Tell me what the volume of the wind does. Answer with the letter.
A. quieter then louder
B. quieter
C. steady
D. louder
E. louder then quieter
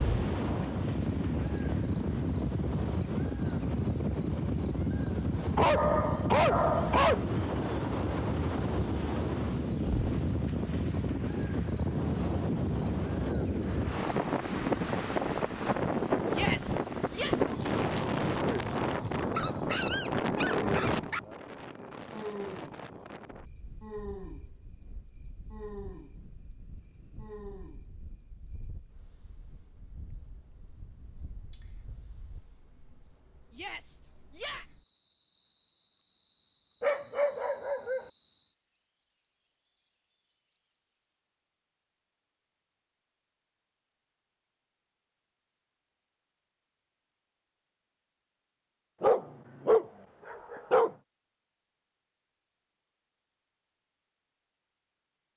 B.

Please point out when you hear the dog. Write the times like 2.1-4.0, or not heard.
5.5-7.2, 19.2-21.2, 36.8-38.1, 49.0-51.0.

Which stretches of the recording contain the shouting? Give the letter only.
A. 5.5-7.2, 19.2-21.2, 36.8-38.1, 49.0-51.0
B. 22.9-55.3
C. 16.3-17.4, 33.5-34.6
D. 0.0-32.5
C.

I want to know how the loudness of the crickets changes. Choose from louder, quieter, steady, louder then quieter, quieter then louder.
quieter then louder.